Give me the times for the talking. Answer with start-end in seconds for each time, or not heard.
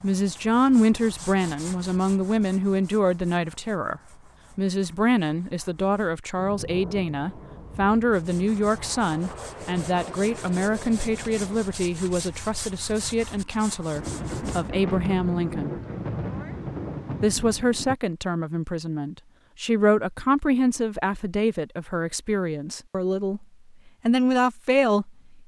0.0-15.8, 17.2-23.4, 24.1-25.4.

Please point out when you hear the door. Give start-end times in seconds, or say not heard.
not heard.